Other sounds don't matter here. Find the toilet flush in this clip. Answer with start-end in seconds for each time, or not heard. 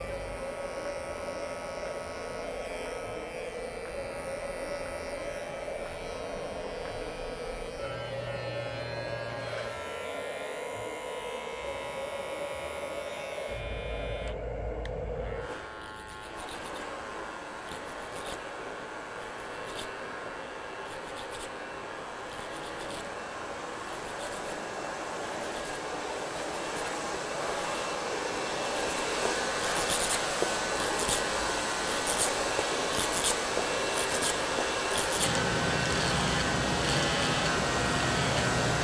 not heard.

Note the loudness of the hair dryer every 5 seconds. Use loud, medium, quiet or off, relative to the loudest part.
medium, medium, medium, medium, medium, loud, loud, loud.